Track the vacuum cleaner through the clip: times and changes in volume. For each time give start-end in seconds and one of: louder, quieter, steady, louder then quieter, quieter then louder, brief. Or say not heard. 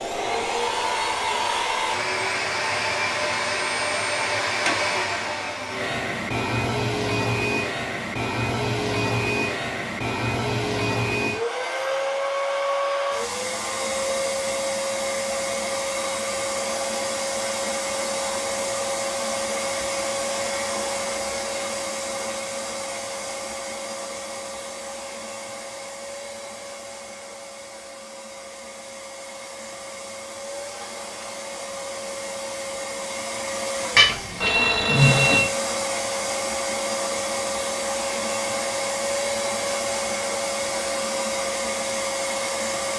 0.0-42.9 quieter then louder.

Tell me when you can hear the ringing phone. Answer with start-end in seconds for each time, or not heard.
34.0-35.5.